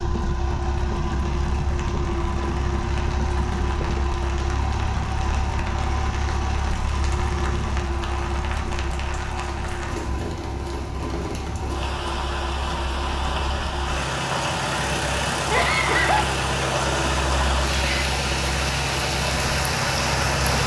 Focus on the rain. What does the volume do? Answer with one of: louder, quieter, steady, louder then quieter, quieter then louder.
louder.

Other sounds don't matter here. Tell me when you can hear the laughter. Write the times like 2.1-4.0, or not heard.
15.5-16.2.